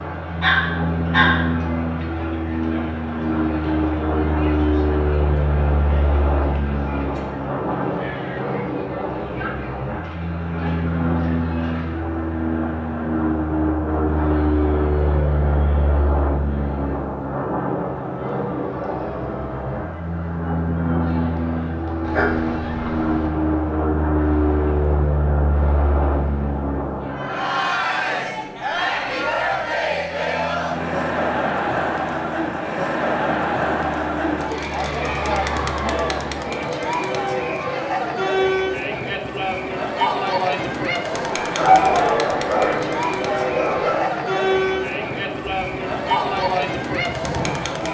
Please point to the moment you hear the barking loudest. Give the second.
42 s.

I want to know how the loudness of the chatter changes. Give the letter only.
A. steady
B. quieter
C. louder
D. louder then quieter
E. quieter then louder
C.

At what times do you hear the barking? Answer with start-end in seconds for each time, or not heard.
0.4-1.4, 22.1-23.3, 41.4-44.0.